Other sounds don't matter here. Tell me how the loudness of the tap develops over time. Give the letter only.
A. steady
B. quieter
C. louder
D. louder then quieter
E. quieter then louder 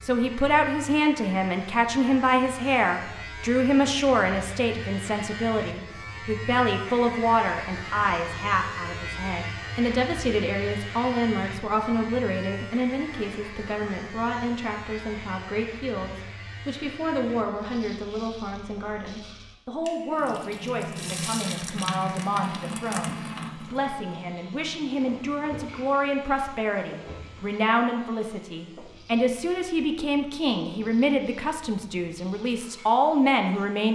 B.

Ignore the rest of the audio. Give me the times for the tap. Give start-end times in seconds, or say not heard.
20.1-27.6.